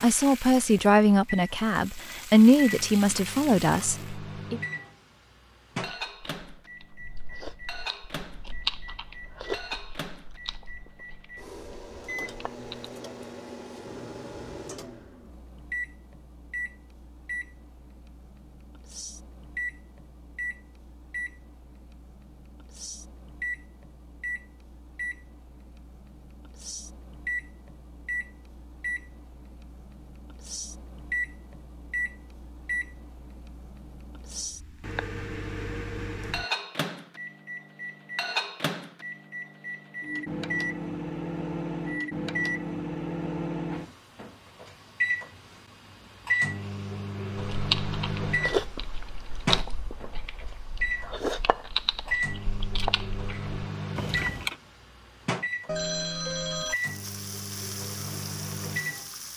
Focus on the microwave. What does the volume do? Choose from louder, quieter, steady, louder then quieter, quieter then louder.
louder.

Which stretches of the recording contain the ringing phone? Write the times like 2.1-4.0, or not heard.
55.6-56.8.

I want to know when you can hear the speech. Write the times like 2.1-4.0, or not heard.
0.0-4.6.